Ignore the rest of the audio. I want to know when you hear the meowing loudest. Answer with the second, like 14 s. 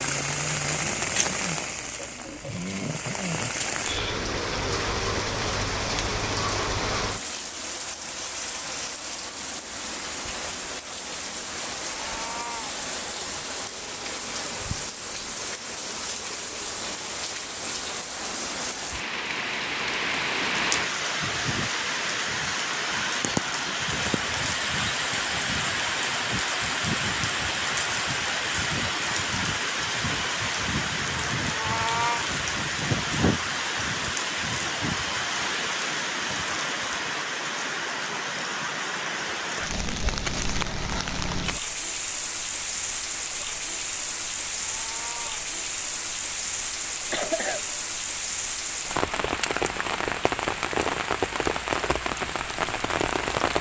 32 s.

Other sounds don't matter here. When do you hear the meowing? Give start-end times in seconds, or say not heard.
11.9-12.8, 31.4-32.2, 44.6-45.5.